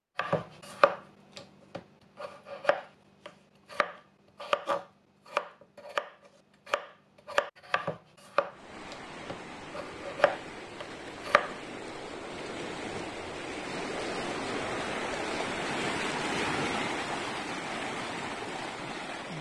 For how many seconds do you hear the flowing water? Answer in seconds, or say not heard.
11 s.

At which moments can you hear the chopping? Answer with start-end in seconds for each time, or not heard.
0.1-11.6.